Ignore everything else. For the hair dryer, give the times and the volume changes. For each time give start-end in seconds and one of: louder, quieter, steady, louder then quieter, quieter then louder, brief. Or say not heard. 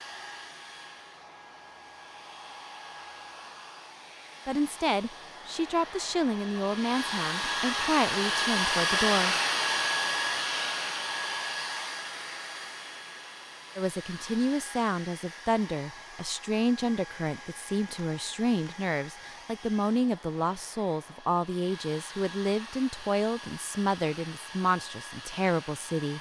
0.0-26.1 louder then quieter.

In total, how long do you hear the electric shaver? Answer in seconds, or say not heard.
not heard.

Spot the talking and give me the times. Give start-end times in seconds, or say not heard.
4.5-9.3, 13.8-26.1.